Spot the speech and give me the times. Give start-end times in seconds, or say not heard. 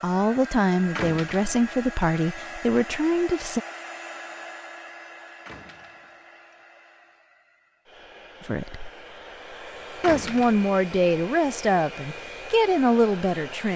0.0-3.6, 8.4-8.9, 10.0-13.7.